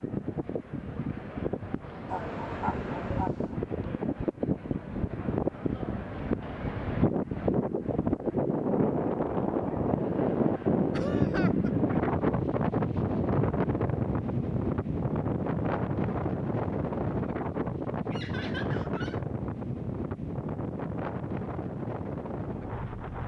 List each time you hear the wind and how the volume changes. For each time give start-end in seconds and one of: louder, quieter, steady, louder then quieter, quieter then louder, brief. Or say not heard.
0.0-23.2 louder then quieter.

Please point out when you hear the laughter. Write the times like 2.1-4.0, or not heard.
2.0-3.5, 10.9-11.7, 18.1-19.2.